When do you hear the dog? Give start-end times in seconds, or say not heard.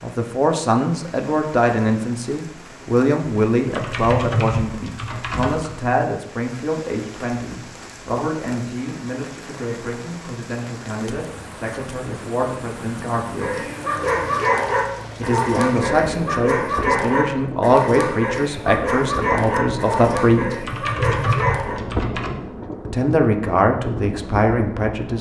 13.3-21.8.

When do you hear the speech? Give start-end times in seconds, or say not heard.
0.0-13.6, 15.2-20.6, 22.9-25.1.